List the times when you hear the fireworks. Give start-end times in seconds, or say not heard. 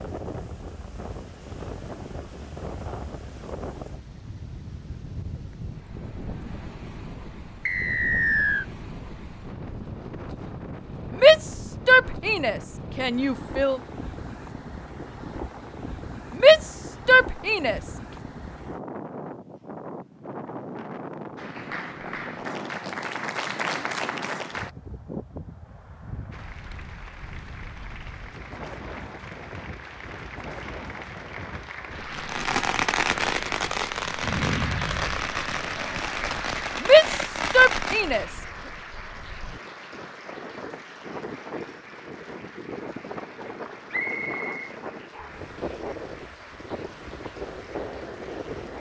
32.1-38.2.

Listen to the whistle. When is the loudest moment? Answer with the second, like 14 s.
8 s.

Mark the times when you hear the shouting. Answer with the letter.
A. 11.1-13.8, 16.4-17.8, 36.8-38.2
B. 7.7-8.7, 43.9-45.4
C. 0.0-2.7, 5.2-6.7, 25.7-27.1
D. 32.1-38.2
A.